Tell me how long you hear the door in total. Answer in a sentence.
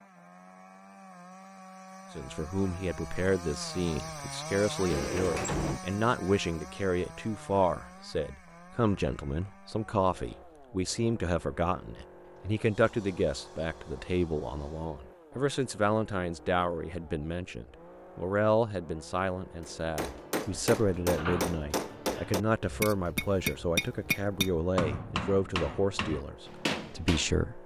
The door can be heard for 5 seconds in total.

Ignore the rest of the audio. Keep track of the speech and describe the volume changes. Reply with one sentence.
The loudness of the speech stays about the same.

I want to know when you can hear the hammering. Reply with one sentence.
The hammering can be heard from 19.6 to 27.3 s.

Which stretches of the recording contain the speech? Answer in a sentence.
You can hear the speech from 2.1 to 27.6 s.